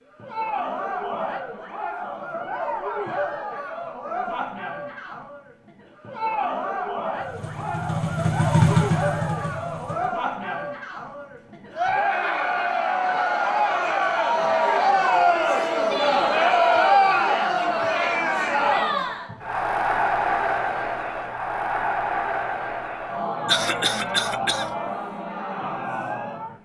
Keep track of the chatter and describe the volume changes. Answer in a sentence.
The volume of the chatter goes up, then down.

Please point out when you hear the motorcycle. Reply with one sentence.
The motorcycle can be heard from 7.2 to 10.2 s.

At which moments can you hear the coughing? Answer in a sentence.
The coughing can be heard from 23.4 to 24.7 s.